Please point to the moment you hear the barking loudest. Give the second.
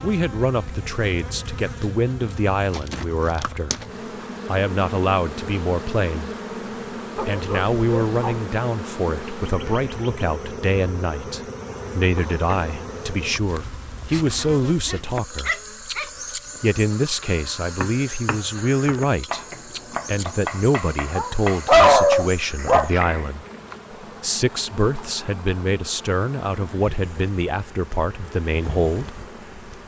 22 s.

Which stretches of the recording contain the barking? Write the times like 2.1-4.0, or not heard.
7.2-8.4, 14.8-16.1, 21.1-23.1.